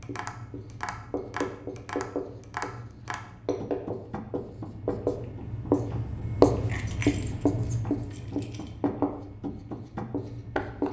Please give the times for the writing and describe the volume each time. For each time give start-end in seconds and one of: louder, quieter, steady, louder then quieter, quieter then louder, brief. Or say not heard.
0.0-10.8 louder then quieter.